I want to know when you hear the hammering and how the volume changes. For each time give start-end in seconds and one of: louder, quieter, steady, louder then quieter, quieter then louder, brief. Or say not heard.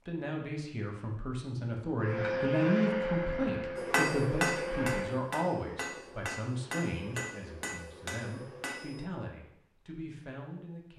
3.8-9.1 quieter.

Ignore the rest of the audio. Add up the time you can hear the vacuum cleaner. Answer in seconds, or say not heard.
3 s.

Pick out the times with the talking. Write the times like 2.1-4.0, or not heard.
0.1-10.9.